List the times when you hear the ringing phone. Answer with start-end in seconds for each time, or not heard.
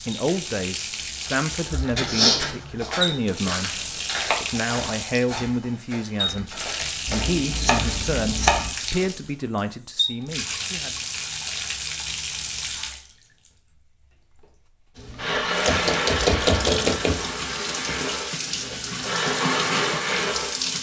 not heard.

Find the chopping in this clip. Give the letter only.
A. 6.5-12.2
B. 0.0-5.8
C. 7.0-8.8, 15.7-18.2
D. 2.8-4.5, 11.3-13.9
C.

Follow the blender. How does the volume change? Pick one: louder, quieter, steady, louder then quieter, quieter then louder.
quieter then louder.